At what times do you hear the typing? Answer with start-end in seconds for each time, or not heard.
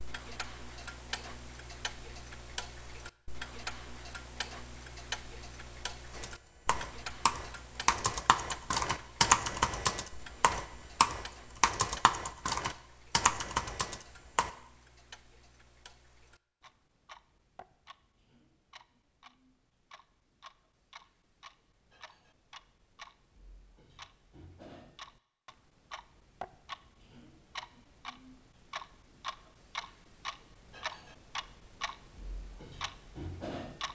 6.1-14.5.